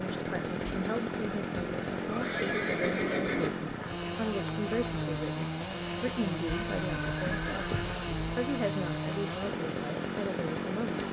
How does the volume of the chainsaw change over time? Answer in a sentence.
The loudness of the chainsaw stays about the same.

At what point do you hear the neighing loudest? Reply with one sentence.
The volume of the neighing peaks at 3 seconds.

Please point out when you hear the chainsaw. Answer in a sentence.
You can hear the chainsaw from 0.0 to 11.0 s.